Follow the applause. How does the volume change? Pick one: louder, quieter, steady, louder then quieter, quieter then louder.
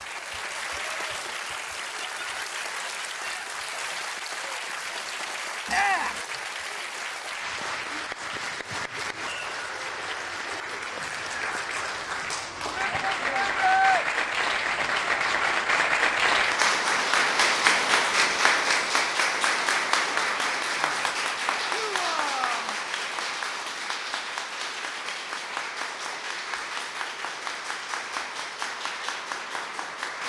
louder then quieter.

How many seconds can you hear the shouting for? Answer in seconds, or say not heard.
3 s.